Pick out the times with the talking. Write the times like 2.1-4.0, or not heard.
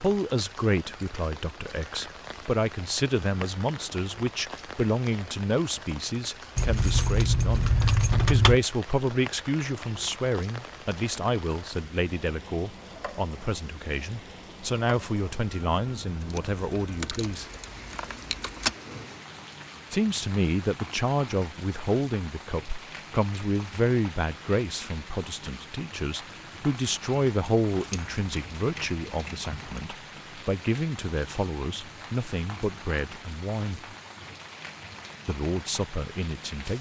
0.0-17.4, 19.9-33.8, 35.2-36.7.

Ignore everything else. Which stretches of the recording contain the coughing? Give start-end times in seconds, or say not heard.
not heard.